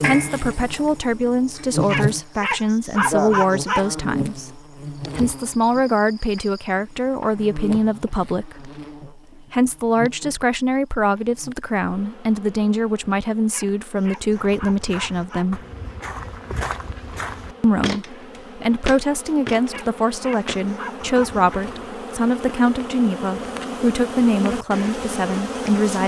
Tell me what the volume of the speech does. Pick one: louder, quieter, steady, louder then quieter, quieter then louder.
steady.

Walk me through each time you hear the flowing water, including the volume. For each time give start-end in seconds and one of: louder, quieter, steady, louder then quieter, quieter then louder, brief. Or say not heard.
not heard.